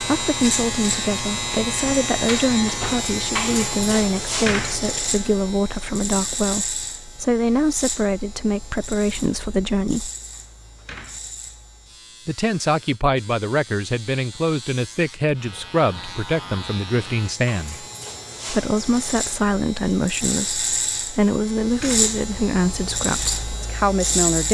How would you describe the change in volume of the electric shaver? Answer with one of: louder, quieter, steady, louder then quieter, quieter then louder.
quieter then louder.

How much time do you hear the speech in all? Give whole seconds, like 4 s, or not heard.
22 s.